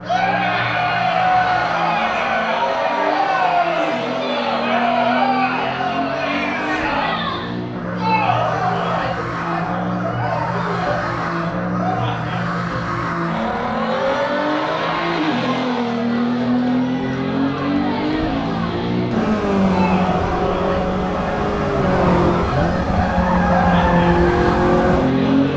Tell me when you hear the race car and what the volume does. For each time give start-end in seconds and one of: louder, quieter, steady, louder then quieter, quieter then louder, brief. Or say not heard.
0.0-25.5 louder.